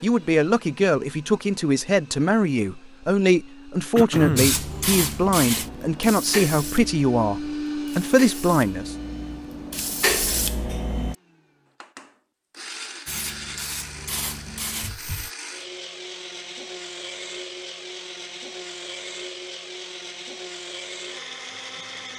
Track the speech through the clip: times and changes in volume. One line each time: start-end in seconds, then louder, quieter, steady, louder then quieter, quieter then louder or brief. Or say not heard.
0.0-8.9 steady.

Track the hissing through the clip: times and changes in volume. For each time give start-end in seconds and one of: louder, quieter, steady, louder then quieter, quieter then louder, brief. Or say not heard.
4.3-11.2 quieter then louder
13.1-15.3 brief.